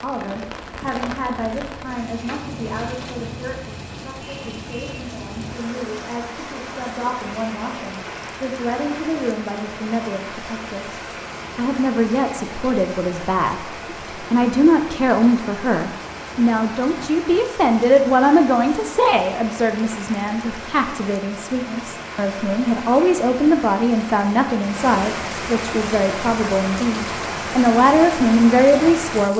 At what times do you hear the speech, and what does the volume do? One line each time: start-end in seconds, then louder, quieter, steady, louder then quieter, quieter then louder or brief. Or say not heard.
0.0-29.3 louder.